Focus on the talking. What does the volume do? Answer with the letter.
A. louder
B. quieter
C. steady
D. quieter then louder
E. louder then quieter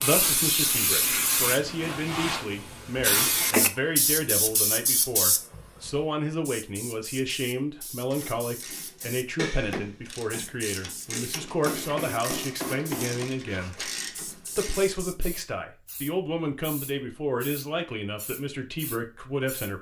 C.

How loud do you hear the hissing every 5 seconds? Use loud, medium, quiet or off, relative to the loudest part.
loud, medium, quiet, quiet.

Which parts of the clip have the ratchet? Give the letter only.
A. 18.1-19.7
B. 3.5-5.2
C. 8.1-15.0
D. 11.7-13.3
C.